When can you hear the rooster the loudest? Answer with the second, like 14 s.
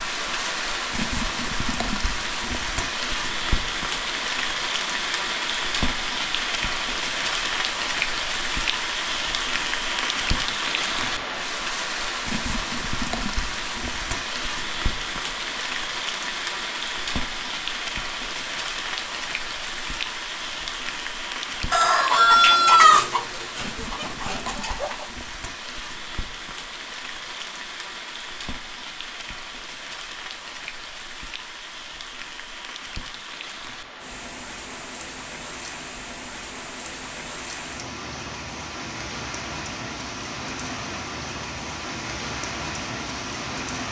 23 s.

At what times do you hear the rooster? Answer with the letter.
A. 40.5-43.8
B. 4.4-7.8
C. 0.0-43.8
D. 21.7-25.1
D.